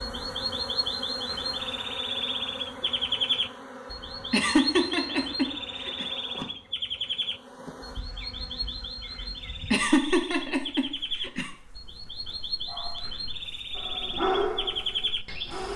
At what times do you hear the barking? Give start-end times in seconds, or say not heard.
12.7-15.7.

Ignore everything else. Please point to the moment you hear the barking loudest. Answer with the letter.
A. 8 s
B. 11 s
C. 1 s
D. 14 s
D.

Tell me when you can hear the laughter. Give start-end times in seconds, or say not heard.
4.3-6.0, 9.7-11.5.